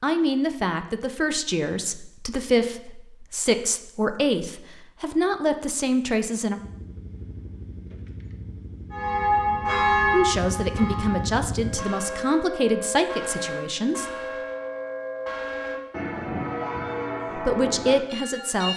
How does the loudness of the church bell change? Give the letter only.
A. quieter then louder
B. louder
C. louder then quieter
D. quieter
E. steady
D.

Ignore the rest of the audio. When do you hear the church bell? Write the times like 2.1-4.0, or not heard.
8.9-18.7.